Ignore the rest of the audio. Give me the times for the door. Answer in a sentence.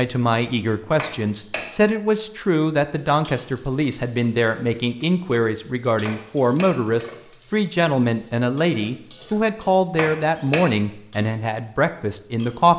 The door can be heard from 0.9 to 1.6 s, from 6.0 to 6.7 s and from 9.9 to 10.7 s.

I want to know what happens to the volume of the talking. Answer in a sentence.
The loudness of the talking stays about the same.